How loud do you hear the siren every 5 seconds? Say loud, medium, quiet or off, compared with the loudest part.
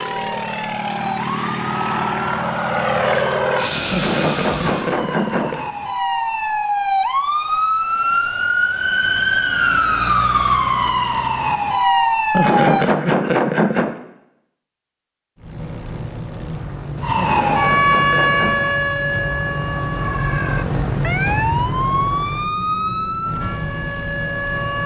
medium, loud, loud, loud, medium.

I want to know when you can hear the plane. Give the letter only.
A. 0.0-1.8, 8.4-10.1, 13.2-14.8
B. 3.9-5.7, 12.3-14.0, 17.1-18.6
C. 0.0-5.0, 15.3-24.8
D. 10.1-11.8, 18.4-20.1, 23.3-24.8
C.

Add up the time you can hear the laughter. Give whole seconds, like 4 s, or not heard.
5 s.